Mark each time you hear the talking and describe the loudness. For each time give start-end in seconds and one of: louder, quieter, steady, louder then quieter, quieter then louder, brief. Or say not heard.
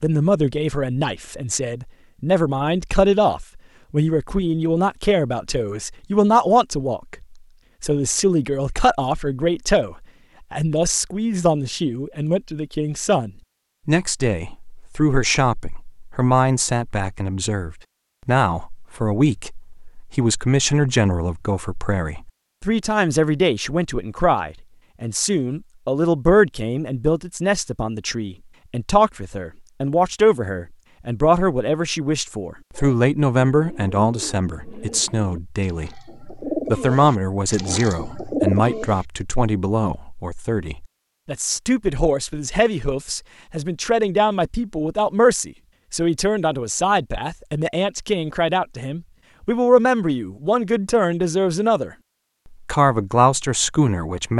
0.0-51.9 steady
52.6-54.3 brief.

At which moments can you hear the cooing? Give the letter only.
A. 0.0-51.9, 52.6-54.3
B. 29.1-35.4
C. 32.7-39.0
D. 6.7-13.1
C.